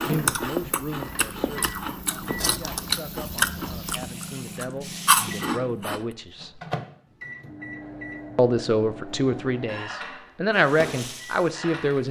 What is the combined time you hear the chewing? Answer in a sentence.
You can hear the chewing for 6 seconds altogether.